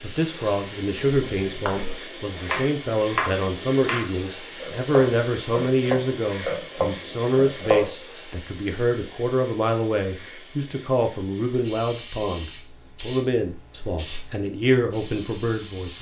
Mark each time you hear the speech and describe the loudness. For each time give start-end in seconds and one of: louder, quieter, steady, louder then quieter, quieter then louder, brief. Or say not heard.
0.0-15.9 steady.